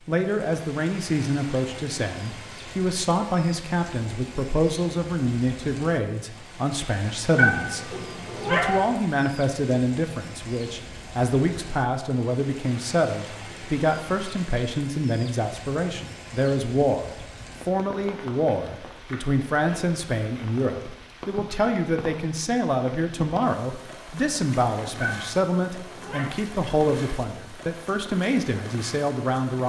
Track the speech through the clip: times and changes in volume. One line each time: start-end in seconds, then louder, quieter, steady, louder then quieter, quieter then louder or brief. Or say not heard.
0.1-29.6 steady.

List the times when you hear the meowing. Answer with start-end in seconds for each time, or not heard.
7.3-8.8, 25.0-26.4.